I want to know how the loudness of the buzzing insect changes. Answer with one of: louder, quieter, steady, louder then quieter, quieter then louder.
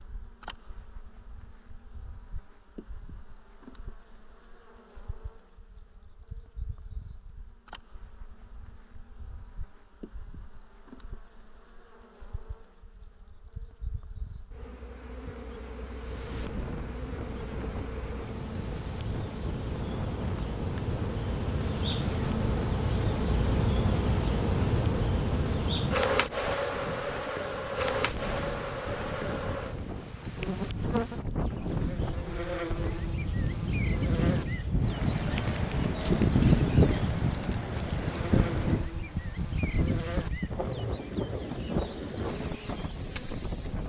louder then quieter.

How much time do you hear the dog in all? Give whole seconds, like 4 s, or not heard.
not heard.